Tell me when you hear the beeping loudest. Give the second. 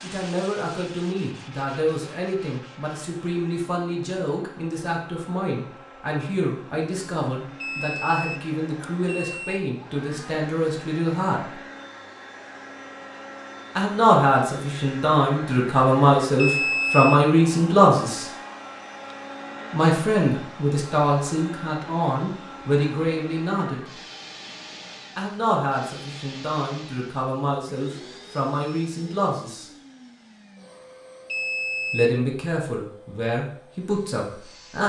17 s.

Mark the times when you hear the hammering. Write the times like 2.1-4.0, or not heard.
not heard.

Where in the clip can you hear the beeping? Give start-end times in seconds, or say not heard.
7.6-9.6, 16.4-17.2, 31.2-32.1.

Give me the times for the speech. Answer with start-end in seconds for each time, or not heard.
0.0-11.6, 13.8-18.2, 19.7-23.9, 25.1-29.6, 31.9-34.8.